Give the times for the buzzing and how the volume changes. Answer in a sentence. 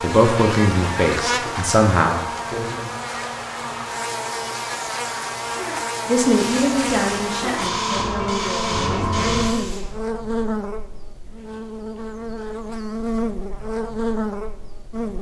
The buzzing can be heard from 0.0 to 15.1 s, at a steady volume.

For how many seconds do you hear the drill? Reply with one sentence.
The drill can't be heard in this clip.